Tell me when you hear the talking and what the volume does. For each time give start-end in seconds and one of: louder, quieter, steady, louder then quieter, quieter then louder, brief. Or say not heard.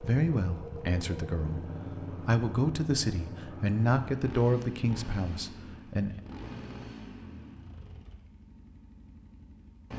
0.0-6.2 louder then quieter.